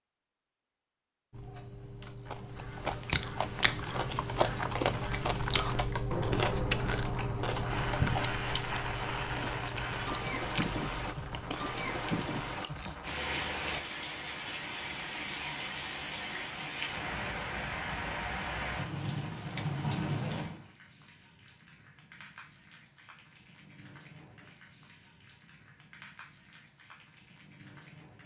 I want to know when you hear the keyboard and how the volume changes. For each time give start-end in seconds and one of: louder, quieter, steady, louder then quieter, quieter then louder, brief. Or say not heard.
1.3-12.6 louder then quieter.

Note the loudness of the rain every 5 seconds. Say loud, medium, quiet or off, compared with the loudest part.
off, loud, loud, loud, medium, quiet.